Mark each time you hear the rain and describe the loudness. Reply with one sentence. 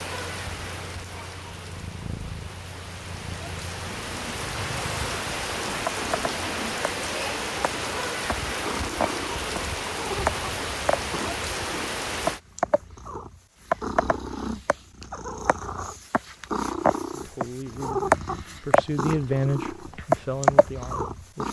The rain can be heard from 0.0 to 12.4 s, getting louder.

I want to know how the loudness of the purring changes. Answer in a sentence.
The loudness of the purring goes up.